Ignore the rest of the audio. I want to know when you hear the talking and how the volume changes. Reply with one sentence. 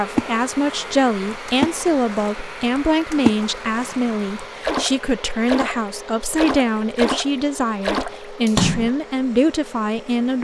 The talking can be heard from 0.0 to 10.3 s, at a steady volume.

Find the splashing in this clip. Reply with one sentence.
The splashing can be heard from 0.1 to 8.9 s.